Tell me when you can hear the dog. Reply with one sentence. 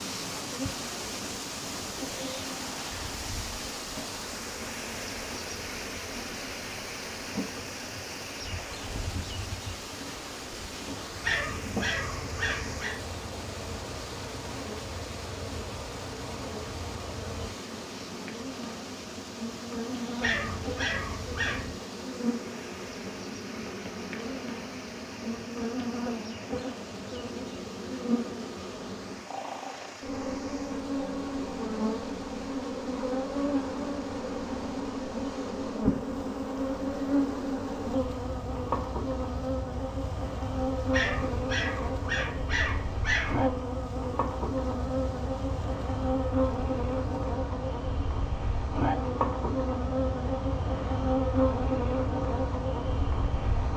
The dog can be heard from 11.2 to 12.9 s, from 20.2 to 21.8 s and from 40.9 to 43.4 s.